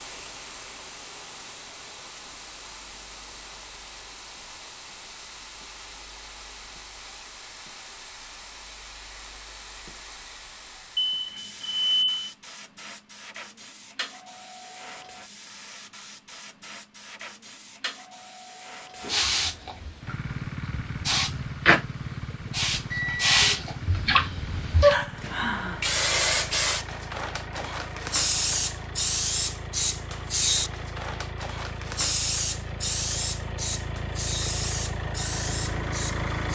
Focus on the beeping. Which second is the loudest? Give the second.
12 s.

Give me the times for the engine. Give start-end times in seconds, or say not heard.
20.0-36.5.